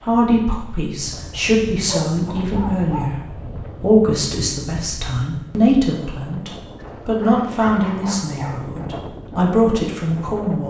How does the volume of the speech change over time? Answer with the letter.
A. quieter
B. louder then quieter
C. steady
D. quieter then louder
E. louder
C.